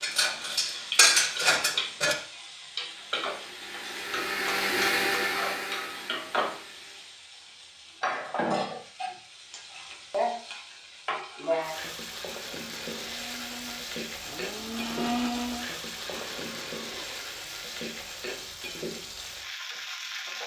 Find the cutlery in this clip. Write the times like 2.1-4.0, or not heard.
0.0-2.1.